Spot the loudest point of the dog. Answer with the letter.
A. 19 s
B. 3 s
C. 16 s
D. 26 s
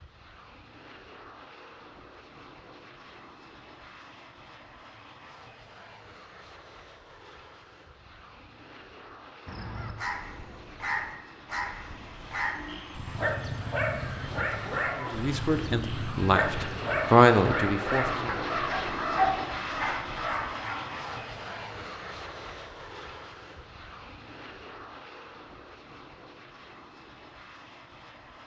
A.